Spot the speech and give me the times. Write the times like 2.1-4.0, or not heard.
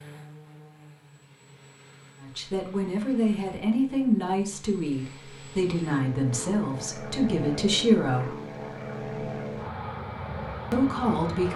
2.2-8.3, 10.7-11.5.